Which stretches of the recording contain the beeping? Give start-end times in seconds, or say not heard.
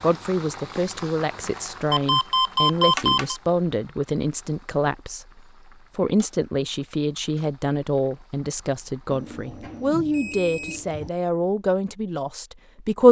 1.9-3.4, 9.1-11.1.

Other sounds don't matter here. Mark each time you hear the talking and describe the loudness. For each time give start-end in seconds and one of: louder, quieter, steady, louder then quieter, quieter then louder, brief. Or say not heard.
0.0-13.0 steady.